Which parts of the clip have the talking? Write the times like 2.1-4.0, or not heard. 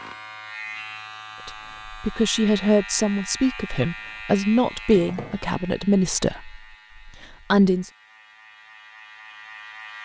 1.4-7.9.